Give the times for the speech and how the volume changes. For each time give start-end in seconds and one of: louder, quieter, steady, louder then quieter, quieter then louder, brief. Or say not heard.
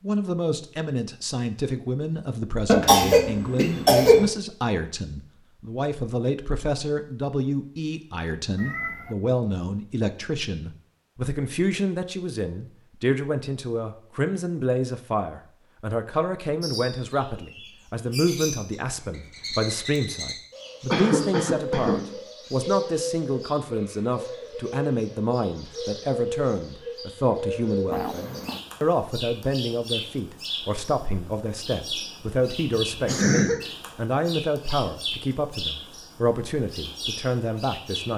0.0-38.1 steady.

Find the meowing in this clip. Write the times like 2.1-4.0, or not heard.
8.6-9.2, 27.9-28.6.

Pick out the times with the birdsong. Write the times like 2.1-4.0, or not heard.
16.6-38.1.